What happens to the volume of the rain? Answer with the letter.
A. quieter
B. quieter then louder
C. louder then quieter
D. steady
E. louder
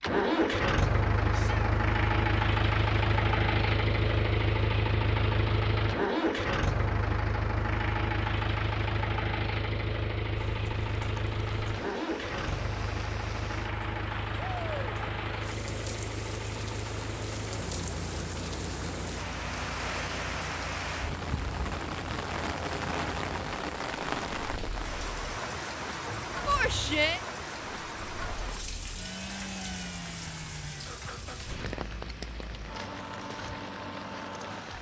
C.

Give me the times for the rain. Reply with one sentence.
The rain can be heard from 10.3 to 34.7 s.